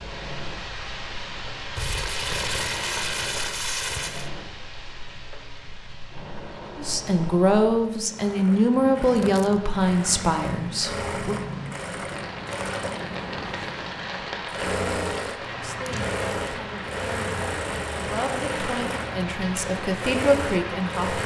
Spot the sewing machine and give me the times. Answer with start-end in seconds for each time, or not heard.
0.0-21.2.